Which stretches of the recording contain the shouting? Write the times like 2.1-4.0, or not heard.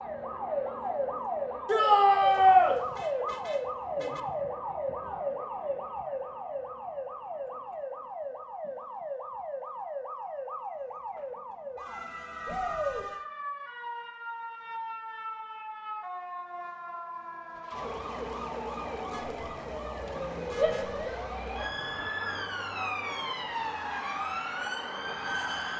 1.6-2.8, 12.4-13.1, 20.6-22.9.